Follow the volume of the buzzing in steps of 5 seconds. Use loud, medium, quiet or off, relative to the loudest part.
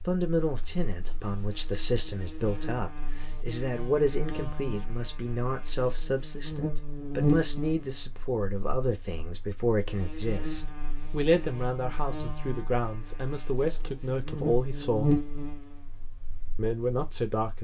quiet, loud, medium, loud.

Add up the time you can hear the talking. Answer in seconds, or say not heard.
16 s.